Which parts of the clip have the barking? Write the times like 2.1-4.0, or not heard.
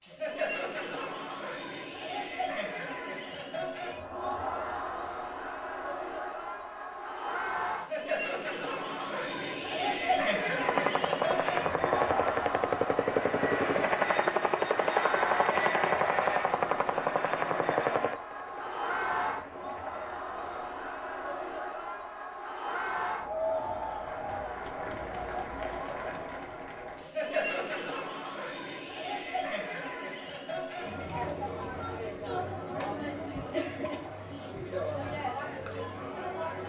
not heard.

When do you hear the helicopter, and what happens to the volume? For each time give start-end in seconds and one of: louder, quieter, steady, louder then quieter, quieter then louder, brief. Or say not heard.
10.6-20.4 quieter.